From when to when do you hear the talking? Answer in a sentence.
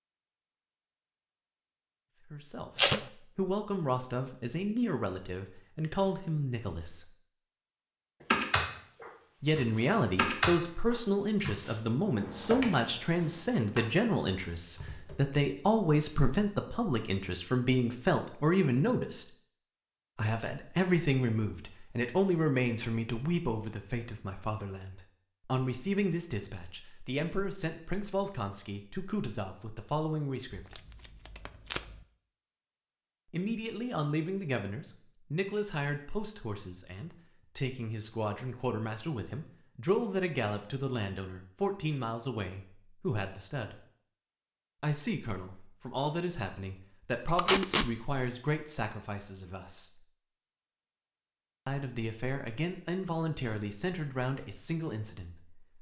The talking can be heard from 2.2 to 7.1 s, from 9.4 to 19.2 s, from 20.1 to 30.8 s, from 33.3 to 43.8 s, from 44.8 to 50.0 s and from 51.6 to 55.6 s.